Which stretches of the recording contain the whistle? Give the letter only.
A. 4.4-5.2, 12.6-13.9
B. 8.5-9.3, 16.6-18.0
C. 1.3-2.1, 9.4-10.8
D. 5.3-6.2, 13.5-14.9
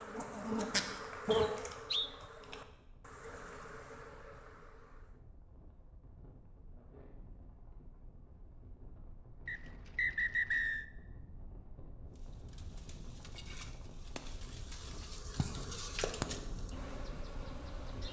C.